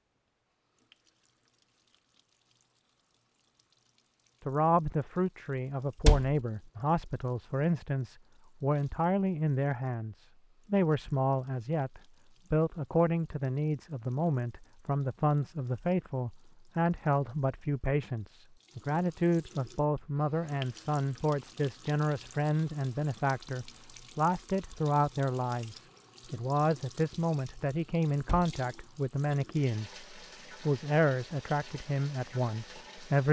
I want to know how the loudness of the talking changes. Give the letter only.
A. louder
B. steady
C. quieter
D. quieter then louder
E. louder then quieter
B.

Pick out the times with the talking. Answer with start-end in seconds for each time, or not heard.
4.5-33.2.